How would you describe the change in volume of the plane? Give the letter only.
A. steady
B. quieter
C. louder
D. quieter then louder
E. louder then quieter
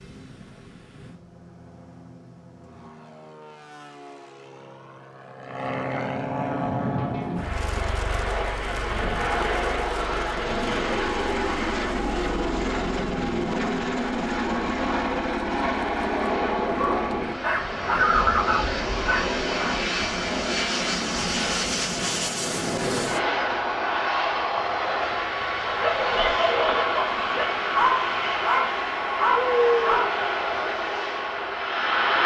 C.